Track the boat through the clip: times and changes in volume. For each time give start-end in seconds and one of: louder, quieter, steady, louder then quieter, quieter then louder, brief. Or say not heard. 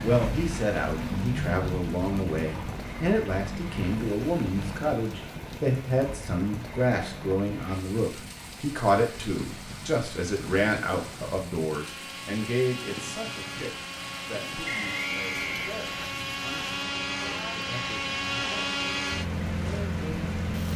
0.0-20.7 quieter then louder.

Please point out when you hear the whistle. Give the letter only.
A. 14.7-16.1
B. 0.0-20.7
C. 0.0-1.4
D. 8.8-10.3
A.